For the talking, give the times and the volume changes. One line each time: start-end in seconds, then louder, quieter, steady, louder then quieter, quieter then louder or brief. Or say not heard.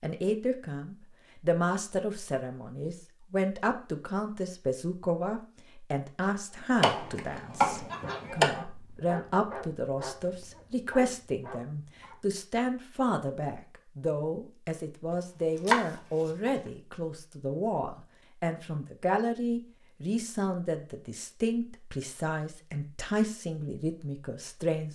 0.0-24.9 steady.